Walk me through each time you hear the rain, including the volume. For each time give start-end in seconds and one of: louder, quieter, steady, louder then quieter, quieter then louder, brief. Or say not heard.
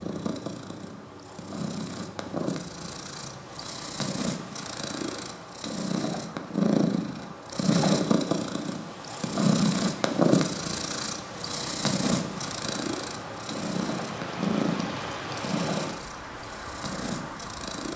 0.0-17.9 louder.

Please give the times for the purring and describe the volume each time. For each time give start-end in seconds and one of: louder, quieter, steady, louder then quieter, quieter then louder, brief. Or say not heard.
0.0-17.9 louder then quieter.